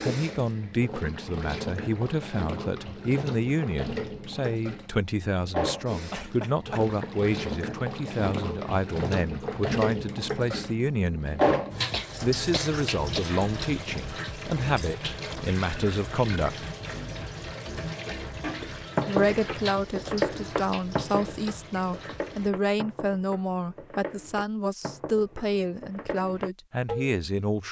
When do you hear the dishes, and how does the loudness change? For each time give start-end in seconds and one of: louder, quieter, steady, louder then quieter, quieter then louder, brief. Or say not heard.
18.1-27.2 quieter.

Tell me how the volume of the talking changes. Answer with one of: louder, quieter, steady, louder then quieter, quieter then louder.
steady.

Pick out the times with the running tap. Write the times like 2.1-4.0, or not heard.
0.0-22.5.